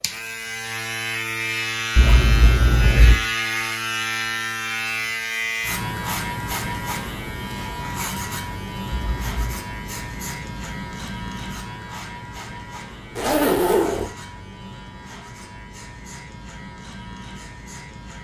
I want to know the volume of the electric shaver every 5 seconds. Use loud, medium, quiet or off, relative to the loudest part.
loud, loud, medium, quiet.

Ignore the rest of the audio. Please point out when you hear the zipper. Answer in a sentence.
You can hear the zipper from 1.9 to 3.1 s, from 8.9 to 9.6 s and from 13.2 to 14.1 s.